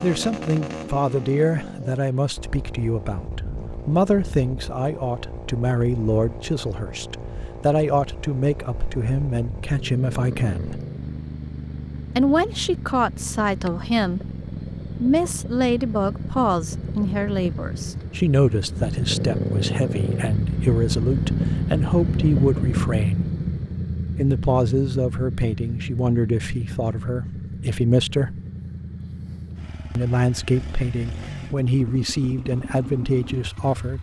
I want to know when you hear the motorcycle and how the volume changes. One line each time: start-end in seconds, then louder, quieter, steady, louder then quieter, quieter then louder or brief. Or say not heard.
0.0-33.9 louder then quieter.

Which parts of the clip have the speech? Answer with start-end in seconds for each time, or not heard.
0.0-10.8, 12.2-14.3, 15.0-23.2, 24.1-28.4, 29.9-33.9.